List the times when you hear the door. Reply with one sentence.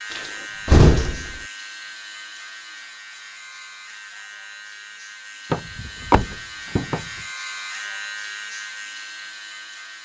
The door can be heard from 0.1 to 1.4 s and from 5.5 to 7.0 s.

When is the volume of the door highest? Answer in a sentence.
The volume of the door peaks at 1 second.